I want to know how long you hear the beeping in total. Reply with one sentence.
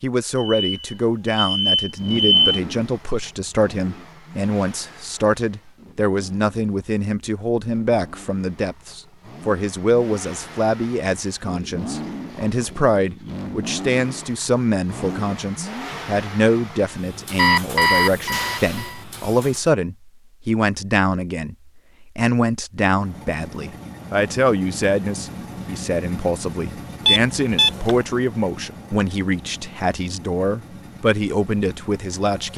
The beeping can be heard for 5 seconds in total.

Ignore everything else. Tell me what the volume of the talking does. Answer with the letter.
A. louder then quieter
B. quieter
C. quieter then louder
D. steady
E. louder
D.